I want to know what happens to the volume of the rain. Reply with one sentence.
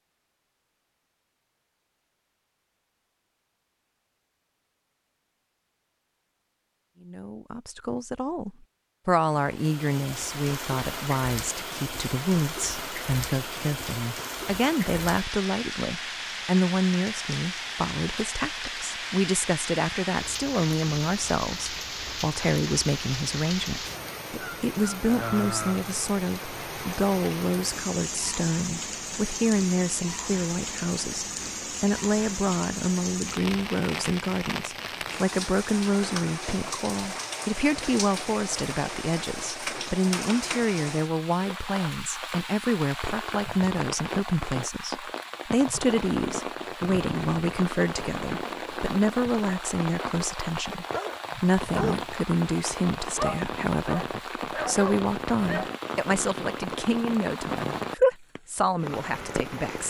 The loudness of the rain stays about the same.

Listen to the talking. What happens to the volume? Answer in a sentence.
The volume of the talking stays about the same.